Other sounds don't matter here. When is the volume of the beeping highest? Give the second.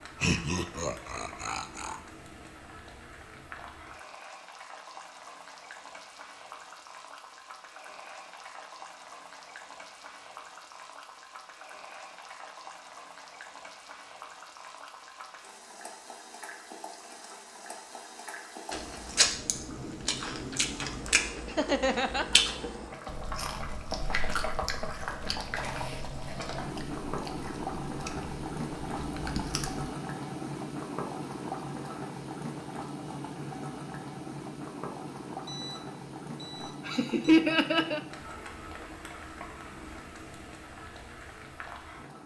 36 s.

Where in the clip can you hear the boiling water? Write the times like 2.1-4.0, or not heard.
0.0-42.2.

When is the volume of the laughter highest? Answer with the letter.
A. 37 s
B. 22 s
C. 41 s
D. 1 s
A.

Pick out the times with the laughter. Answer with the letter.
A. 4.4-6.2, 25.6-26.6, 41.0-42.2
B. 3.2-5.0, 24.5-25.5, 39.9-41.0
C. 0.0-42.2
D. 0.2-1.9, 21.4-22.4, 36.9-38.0
D.